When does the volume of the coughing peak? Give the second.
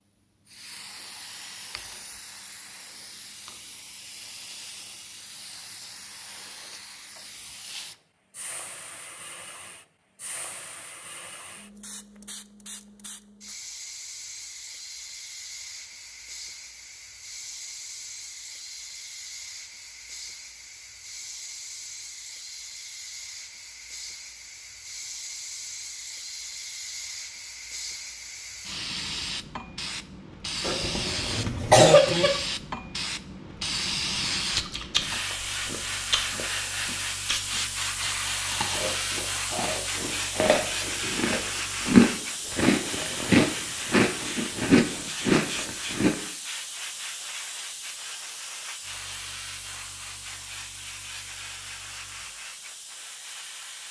32 s.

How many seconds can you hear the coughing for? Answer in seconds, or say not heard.
2 s.